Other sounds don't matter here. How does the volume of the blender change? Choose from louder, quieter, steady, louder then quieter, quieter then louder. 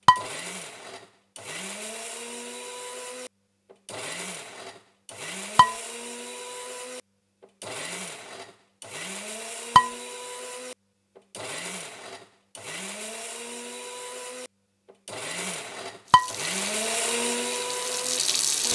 louder.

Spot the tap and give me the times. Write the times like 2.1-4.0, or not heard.
16.1-18.7.